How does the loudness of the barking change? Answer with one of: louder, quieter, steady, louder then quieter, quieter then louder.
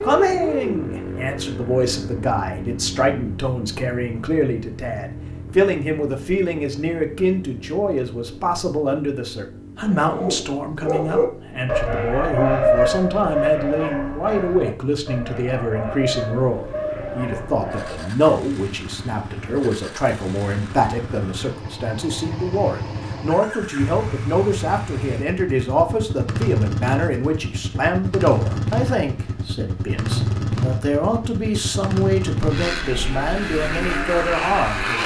quieter.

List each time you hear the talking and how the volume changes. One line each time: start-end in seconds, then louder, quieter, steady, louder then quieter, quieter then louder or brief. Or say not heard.
0.0-35.0 steady.